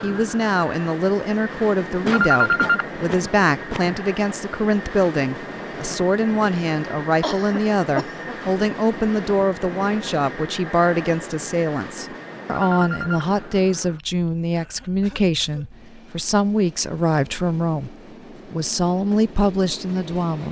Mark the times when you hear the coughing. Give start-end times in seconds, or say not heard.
2.0-4.0, 7.2-8.3, 14.5-15.7.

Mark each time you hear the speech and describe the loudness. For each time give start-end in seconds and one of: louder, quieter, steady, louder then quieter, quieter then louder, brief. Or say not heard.
0.0-20.4 steady.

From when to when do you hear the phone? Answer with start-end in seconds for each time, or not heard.
2.1-2.9, 12.5-13.2.